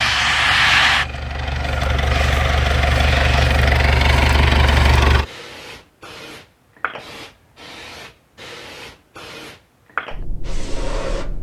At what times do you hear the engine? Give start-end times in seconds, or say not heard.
0.0-5.2.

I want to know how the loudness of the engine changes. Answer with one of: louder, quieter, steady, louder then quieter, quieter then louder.
louder.